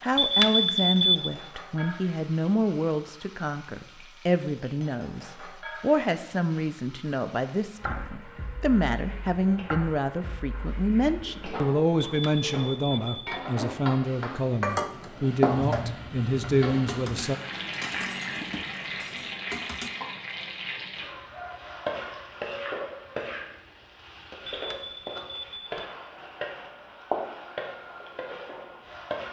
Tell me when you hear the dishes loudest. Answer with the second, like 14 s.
15 s.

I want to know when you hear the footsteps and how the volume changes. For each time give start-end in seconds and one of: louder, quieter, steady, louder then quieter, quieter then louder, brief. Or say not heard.
not heard.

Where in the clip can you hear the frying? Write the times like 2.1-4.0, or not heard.
0.0-29.2.